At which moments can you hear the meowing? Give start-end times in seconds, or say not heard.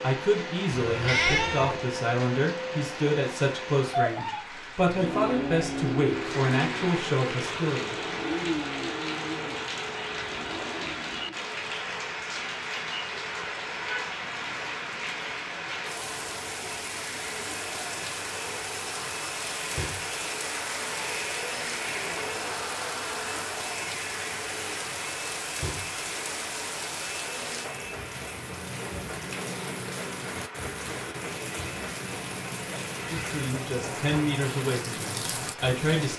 0.8-1.9.